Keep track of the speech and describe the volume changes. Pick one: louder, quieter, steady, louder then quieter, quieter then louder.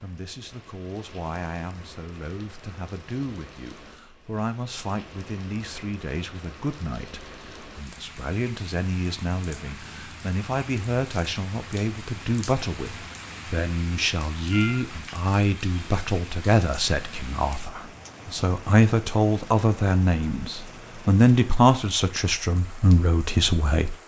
louder.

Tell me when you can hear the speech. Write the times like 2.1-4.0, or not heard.
0.0-23.9.